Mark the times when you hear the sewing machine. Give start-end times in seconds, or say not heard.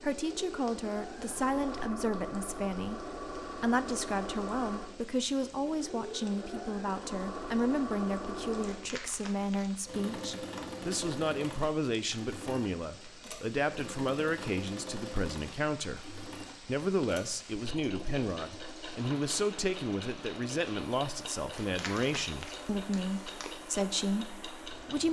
0.0-25.0.